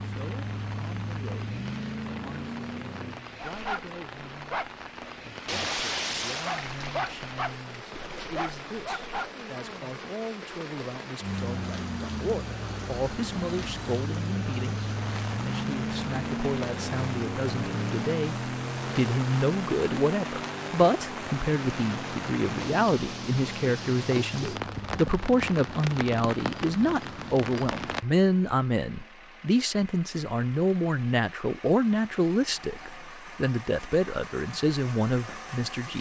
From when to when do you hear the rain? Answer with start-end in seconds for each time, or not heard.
0.0-28.1.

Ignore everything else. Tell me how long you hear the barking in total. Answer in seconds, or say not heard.
6 s.